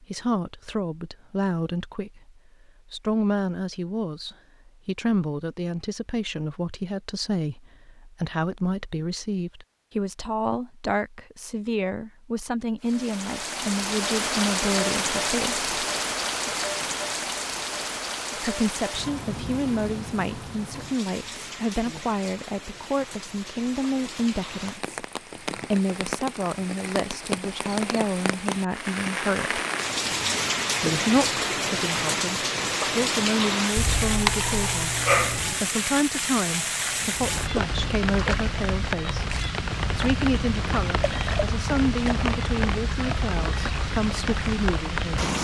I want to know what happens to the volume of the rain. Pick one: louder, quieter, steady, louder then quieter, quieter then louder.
quieter then louder.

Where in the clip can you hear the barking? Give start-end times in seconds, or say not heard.
33.8-35.4.